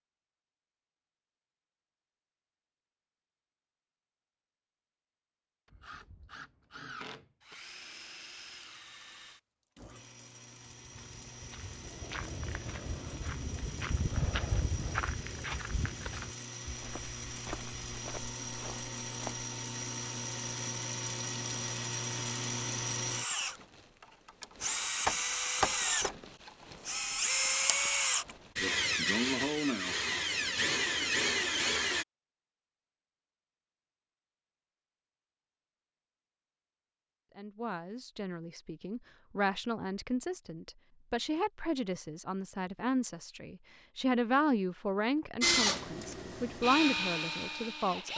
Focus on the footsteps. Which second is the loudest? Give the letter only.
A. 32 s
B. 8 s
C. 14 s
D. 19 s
C.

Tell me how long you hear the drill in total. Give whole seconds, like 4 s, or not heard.
29 s.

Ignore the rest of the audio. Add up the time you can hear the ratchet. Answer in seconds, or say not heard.
not heard.